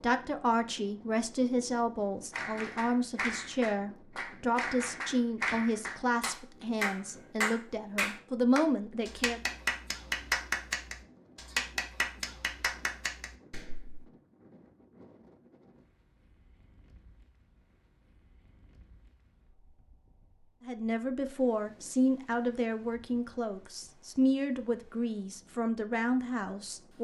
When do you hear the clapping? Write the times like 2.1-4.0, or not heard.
2.3-14.1.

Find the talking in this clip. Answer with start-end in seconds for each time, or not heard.
0.0-9.4, 20.6-26.9.